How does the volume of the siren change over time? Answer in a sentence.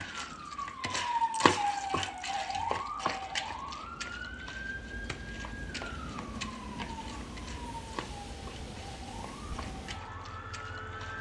The volume of the siren goes down.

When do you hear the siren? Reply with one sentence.
You can hear the siren from 0.0 to 11.1 s.